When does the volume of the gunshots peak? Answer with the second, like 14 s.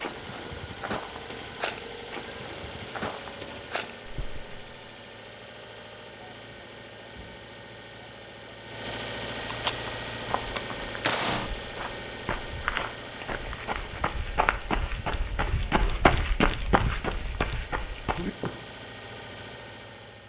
11 s.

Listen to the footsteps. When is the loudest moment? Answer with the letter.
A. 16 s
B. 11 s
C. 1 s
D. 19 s
A.